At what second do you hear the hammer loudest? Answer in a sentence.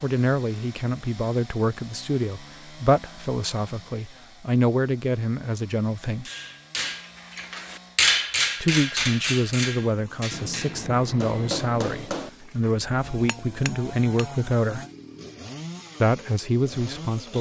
The loudest moment of the hammer is at 8 seconds.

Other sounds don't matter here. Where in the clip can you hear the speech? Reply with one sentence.
The speech can be heard from 0.0 to 6.2 s, from 8.6 to 14.8 s and from 16.0 to 17.3 s.